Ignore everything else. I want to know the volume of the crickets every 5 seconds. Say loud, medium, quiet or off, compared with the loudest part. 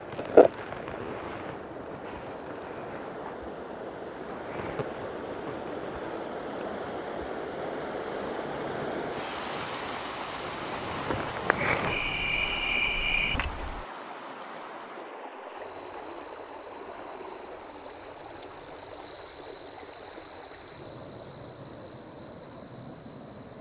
medium, quiet, medium, loud, loud.